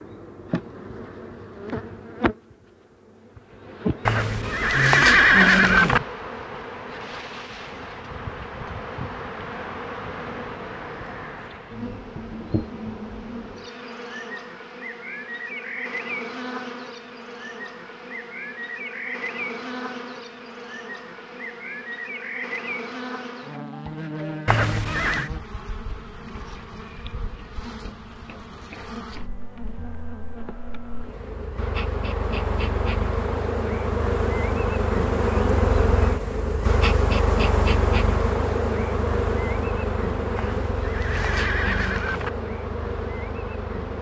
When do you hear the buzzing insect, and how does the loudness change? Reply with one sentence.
You can hear the buzzing insect from 0.0 to 43.9 s, getting louder.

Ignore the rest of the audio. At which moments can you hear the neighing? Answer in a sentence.
The neighing can be heard from 4.0 to 6.0 s, from 24.4 to 25.3 s and from 40.4 to 42.3 s.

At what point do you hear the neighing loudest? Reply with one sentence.
The loudest moment of the neighing is at 5 seconds.